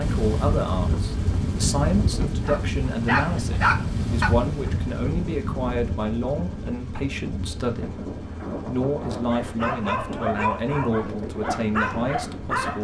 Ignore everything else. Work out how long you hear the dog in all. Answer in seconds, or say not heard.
6 s.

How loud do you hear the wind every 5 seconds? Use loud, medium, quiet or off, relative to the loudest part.
loud, medium, medium.